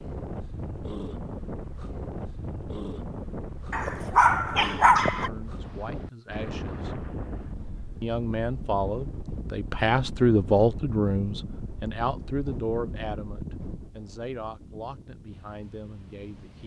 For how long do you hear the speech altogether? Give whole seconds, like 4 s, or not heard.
10 s.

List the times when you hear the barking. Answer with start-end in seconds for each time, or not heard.
3.7-5.3.